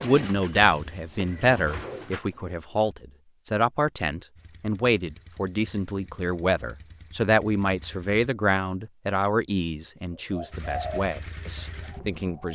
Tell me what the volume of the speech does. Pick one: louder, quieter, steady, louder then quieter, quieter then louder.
quieter.